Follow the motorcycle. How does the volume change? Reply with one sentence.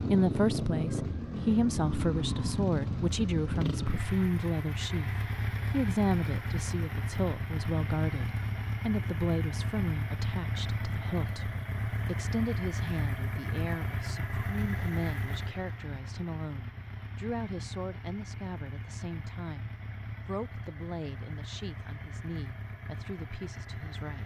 The volume of the motorcycle goes down.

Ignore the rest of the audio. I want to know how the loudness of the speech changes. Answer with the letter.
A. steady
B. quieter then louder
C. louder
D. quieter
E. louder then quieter
D.